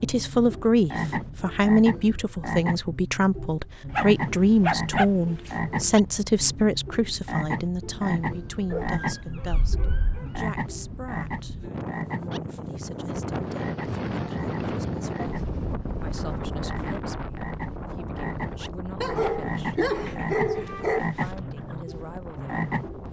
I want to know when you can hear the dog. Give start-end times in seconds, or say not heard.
3.9-5.5, 8.7-10.4, 19.0-21.0.